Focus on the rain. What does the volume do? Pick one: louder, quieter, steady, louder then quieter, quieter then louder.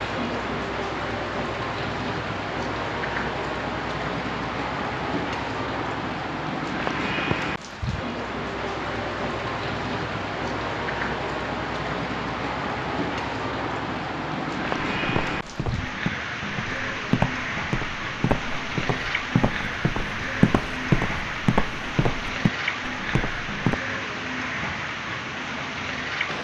steady.